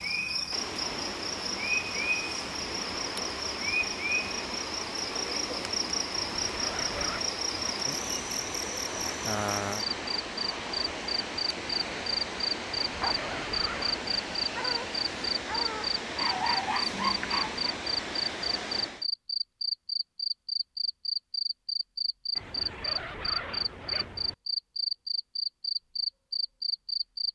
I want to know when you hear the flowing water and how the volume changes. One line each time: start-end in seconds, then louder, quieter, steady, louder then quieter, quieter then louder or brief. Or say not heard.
0.0-19.1 steady.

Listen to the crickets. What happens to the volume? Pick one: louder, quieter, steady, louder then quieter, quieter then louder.
steady.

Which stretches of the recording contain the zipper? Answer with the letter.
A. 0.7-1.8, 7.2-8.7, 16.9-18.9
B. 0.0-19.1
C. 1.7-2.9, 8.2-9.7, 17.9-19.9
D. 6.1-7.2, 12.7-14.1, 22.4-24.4
D.